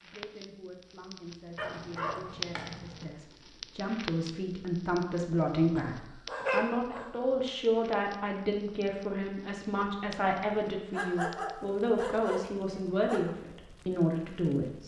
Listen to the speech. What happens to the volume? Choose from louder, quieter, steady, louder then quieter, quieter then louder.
louder.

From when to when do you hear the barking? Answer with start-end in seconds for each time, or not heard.
1.6-3.0, 5.8-7.3, 10.5-13.2.